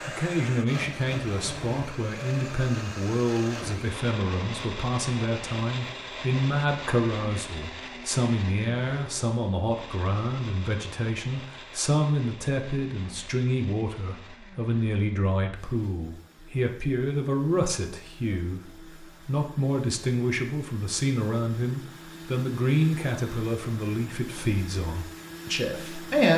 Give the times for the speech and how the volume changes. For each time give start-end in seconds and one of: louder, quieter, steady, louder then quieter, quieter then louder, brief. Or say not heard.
0.1-26.3 steady.